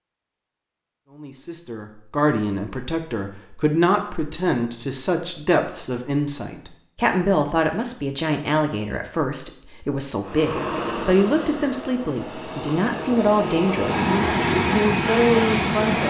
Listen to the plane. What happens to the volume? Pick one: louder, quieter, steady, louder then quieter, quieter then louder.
quieter then louder.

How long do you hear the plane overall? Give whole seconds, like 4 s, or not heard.
6 s.